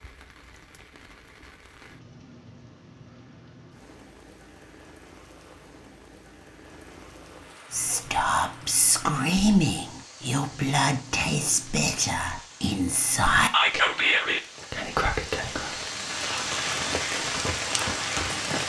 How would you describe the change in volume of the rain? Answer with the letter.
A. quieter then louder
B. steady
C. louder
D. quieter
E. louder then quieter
C.